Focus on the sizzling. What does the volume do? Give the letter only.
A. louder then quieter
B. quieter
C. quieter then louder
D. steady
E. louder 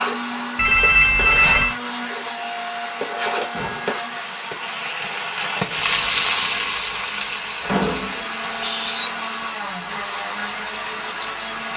A.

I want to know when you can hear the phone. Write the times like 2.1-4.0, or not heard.
0.6-1.8, 8.4-9.1.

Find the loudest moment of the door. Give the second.
8 s.